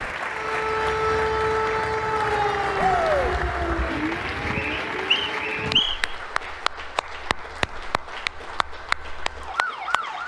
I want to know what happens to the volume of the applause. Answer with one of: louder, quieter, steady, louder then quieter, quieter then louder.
steady.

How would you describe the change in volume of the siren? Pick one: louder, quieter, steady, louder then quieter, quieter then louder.
quieter then louder.